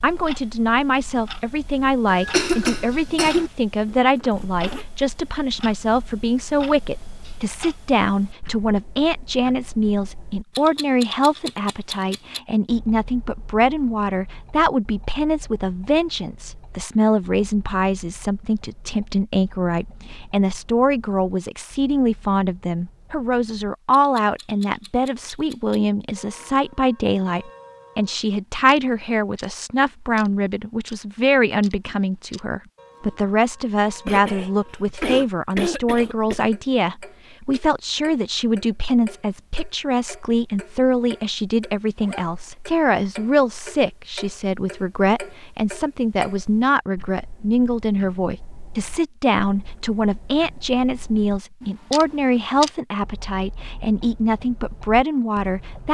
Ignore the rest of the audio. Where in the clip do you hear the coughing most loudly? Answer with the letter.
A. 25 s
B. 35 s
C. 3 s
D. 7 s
C.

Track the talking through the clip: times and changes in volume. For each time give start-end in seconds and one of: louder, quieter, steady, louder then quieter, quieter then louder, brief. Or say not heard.
0.0-55.9 steady.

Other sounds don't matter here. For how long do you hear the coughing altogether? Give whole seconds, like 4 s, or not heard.
4 s.